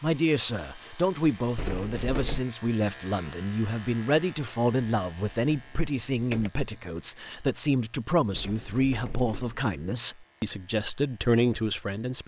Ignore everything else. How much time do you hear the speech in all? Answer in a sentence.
You can hear the speech for 12 seconds altogether.